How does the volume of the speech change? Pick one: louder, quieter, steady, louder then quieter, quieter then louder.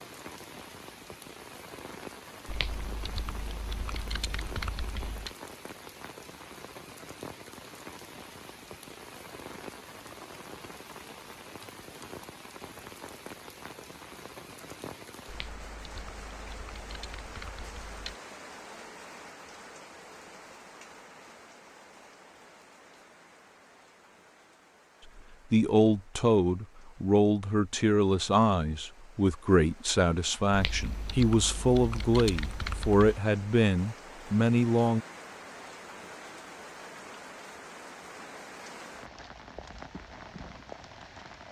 steady.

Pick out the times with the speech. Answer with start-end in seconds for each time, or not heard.
25.5-35.0.